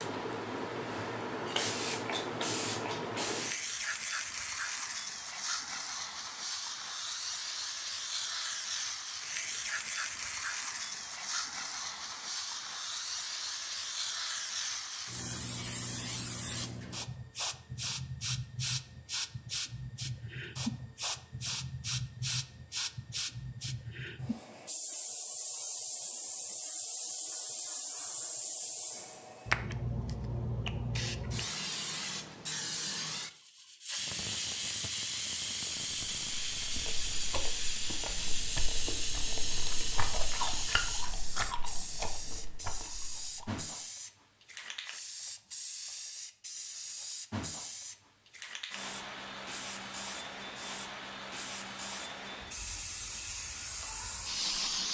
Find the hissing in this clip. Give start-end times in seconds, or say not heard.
0.0-54.8.